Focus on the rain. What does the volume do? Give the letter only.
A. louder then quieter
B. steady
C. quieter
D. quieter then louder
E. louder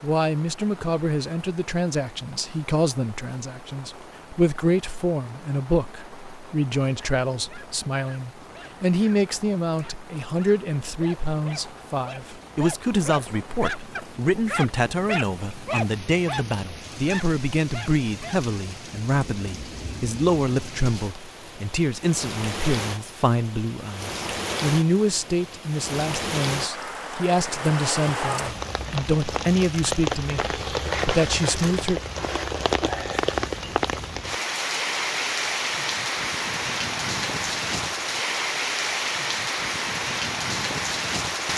E.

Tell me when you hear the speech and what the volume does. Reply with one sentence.
The speech can be heard from 0.0 to 32.0 s, at a steady volume.